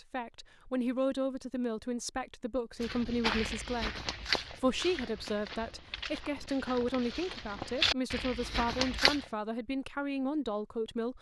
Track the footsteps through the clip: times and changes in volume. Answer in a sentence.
You can hear the footsteps from 2.8 to 9.2 s, getting quieter then louder.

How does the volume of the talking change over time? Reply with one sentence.
The loudness of the talking stays about the same.